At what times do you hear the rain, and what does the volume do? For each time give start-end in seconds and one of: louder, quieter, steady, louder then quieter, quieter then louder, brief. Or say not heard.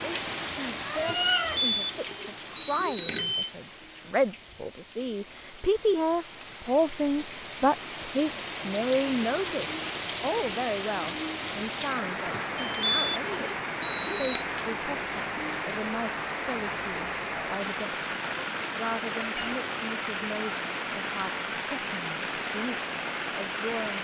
0.0-23.9 louder.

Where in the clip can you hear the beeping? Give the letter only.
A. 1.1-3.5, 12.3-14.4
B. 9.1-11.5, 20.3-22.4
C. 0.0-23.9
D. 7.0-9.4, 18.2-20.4
A.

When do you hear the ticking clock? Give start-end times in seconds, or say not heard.
not heard.